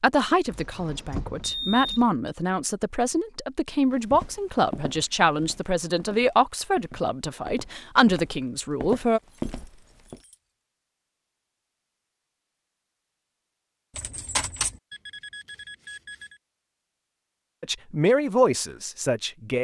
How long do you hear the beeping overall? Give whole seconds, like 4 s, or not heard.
2 s.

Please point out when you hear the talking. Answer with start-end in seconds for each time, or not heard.
0.0-9.2, 17.6-19.5.